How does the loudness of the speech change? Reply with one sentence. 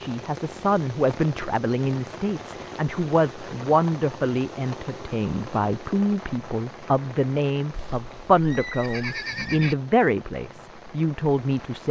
The volume of the speech stays about the same.